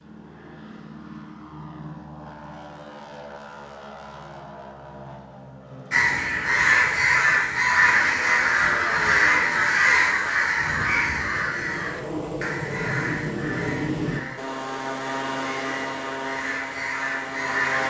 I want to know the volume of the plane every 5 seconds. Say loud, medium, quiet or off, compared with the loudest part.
medium, medium, loud, loud.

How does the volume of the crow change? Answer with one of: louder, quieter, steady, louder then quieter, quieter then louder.
quieter.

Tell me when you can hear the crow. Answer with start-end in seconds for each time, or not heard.
5.9-17.8.